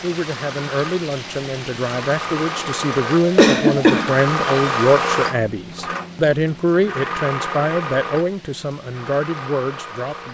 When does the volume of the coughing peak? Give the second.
4 s.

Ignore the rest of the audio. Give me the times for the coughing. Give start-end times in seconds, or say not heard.
3.1-4.8.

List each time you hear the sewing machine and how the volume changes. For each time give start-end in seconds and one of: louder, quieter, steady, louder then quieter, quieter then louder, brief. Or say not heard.
0.0-10.2 louder then quieter.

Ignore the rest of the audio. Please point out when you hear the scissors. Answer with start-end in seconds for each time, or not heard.
not heard.